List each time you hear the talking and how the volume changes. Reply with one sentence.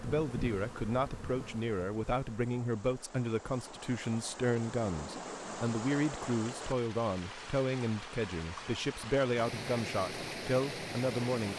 You can hear the talking from 0.0 to 11.5 s, at a steady volume.